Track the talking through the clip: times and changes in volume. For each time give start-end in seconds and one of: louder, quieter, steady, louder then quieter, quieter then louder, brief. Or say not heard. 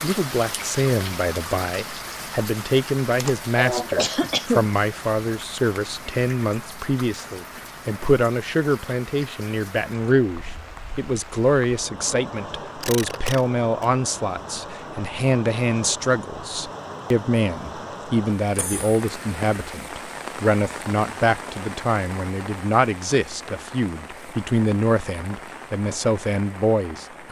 0.0-27.2 steady.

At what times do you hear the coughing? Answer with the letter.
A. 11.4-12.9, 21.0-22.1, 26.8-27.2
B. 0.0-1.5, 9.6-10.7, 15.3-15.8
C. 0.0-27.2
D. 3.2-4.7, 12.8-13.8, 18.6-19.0
D.